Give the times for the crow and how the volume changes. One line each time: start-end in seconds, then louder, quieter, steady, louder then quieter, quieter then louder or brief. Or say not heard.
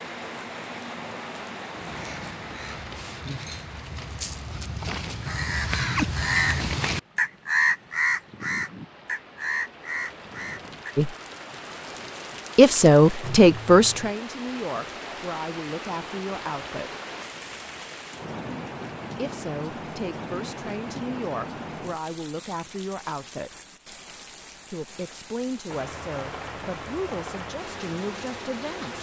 1.8-10.9 louder then quieter.